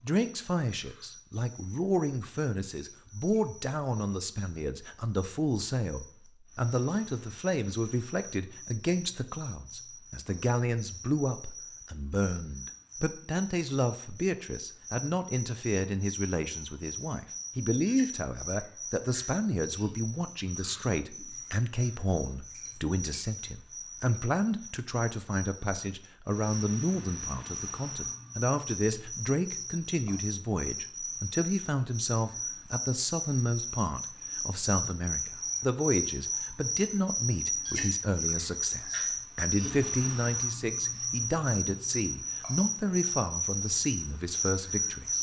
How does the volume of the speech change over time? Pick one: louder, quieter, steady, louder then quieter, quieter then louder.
steady.